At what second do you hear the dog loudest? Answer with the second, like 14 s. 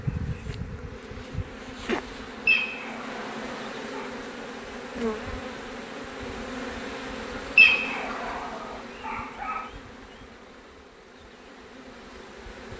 8 s.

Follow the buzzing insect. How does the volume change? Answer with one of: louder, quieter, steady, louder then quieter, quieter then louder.
quieter.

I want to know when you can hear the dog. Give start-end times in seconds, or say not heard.
2.5-4.1, 7.5-9.7.